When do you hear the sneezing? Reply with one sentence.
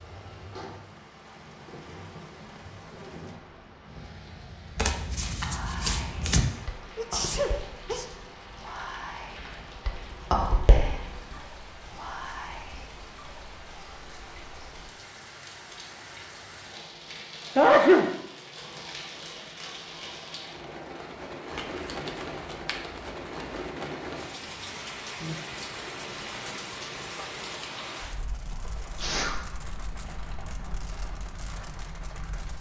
The sneezing can be heard from 7.0 to 8.1 s, from 17.6 to 18.1 s and from 28.9 to 30.8 s.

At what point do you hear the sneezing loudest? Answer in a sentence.
The volume of the sneezing peaks at 18 seconds.